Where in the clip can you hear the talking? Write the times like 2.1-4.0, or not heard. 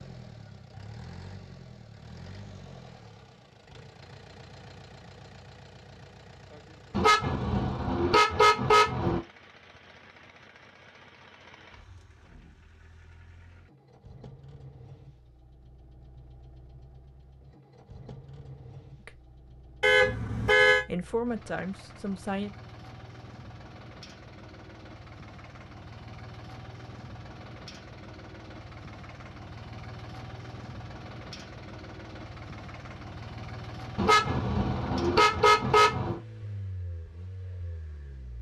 20.9-22.5.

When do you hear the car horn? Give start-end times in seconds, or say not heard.
6.9-9.2, 19.8-20.8, 34.0-36.2.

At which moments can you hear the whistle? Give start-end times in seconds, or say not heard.
not heard.